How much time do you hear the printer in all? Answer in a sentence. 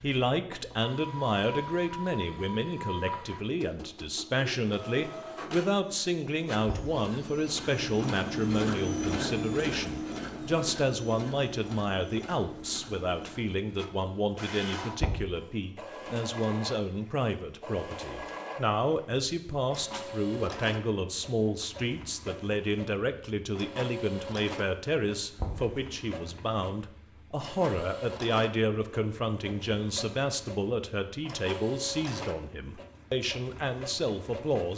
The printer can be heard for 35 seconds in total.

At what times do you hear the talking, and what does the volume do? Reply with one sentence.
The talking can be heard from 0.0 to 34.7 s, at a steady volume.